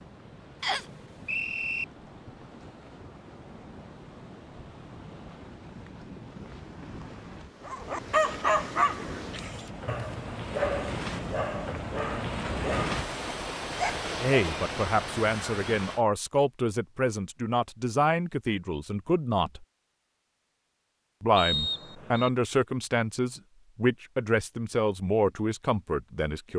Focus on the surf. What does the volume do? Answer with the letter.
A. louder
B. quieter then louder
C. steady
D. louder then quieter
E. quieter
A.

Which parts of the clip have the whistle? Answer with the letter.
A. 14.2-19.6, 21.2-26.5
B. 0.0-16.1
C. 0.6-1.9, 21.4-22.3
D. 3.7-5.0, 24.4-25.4
C.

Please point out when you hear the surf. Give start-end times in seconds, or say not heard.
0.0-16.1.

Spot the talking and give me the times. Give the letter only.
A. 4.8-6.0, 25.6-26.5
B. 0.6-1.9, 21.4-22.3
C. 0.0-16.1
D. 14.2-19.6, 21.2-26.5
D.